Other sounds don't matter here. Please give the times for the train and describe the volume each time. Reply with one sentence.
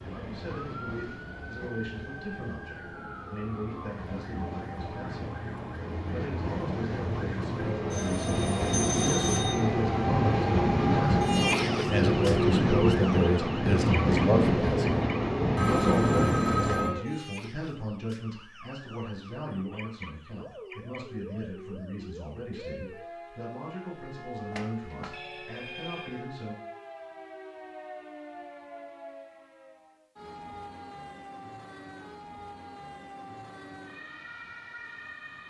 You can hear the train from 0.0 to 17.0 s, getting louder.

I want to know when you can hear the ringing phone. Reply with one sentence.
You can hear the ringing phone from 7.9 to 9.7 s, from 15.6 to 16.9 s and from 24.5 to 26.2 s.